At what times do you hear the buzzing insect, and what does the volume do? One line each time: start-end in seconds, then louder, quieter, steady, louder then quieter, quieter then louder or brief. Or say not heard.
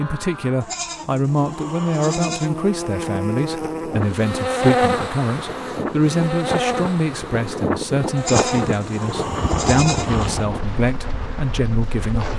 0.0-12.3 louder then quieter.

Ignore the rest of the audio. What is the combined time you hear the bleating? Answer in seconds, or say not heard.
4 s.